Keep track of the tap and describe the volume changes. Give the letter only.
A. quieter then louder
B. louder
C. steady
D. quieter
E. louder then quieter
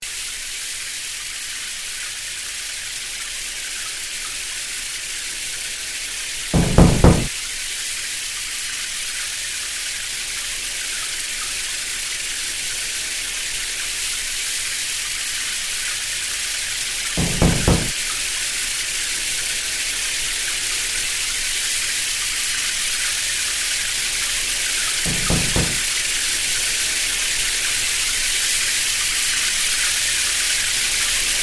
B.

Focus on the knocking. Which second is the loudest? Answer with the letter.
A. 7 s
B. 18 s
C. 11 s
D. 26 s
A.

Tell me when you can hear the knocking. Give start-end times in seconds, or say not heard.
6.5-7.3, 17.1-17.9, 25.1-25.8.